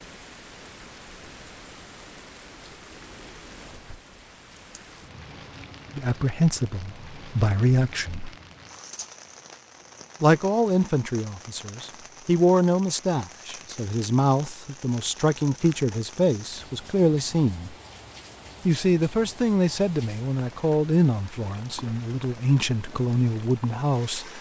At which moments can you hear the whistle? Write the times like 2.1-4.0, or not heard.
not heard.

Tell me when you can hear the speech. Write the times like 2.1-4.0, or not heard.
6.0-8.3, 10.2-17.8, 18.6-24.3.